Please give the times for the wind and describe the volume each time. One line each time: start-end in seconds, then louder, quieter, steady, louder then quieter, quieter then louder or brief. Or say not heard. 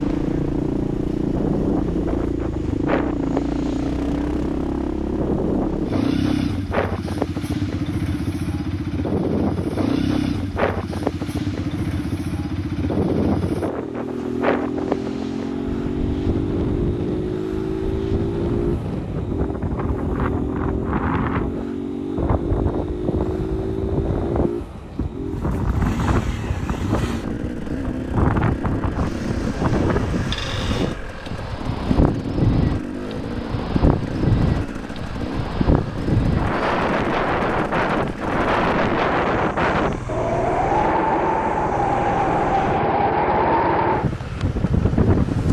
0.0-45.4 louder.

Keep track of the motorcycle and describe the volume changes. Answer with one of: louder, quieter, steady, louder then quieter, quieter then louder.
quieter.